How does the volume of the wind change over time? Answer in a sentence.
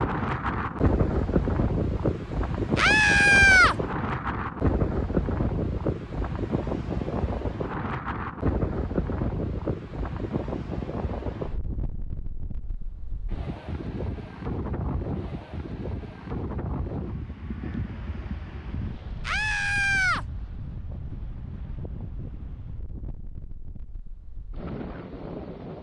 The volume of the wind goes down.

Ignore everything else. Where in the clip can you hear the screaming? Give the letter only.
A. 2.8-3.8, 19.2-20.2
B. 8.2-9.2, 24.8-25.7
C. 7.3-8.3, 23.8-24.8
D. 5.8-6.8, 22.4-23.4
A.